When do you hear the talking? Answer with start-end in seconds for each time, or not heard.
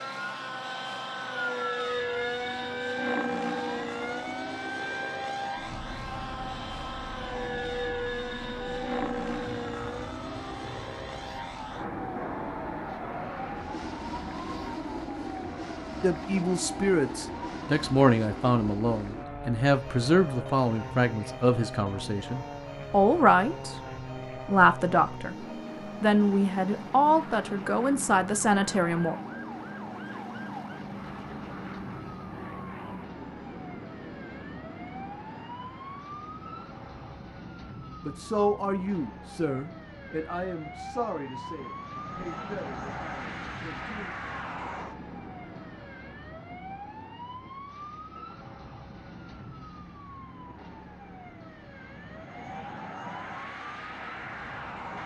16.0-23.8, 24.4-29.1, 38.0-44.1.